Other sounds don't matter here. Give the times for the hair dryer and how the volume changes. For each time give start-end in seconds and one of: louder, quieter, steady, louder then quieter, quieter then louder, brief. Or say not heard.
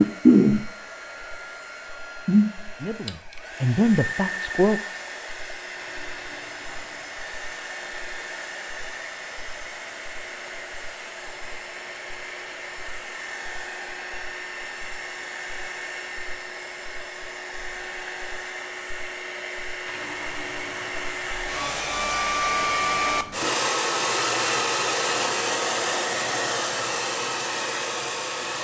0.0-28.5 quieter then louder.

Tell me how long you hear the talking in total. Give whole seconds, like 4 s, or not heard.
2 s.